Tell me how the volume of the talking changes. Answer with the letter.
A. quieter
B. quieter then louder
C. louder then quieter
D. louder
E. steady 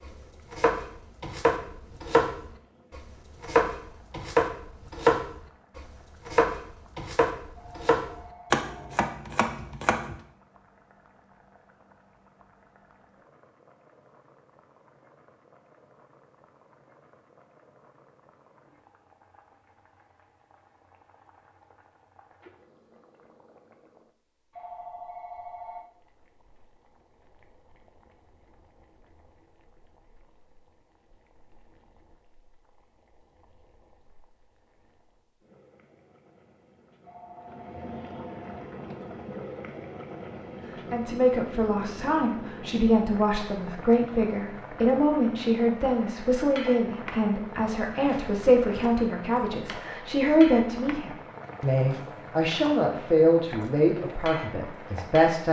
E.